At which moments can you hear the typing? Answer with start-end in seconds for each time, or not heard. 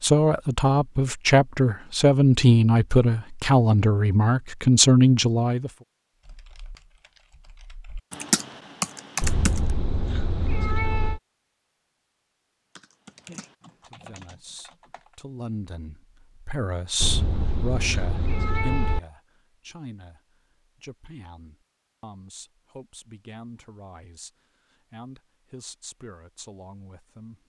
6.2-9.6, 12.8-15.2.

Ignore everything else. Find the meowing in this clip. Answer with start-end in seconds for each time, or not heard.
9.2-11.2, 17.0-19.0.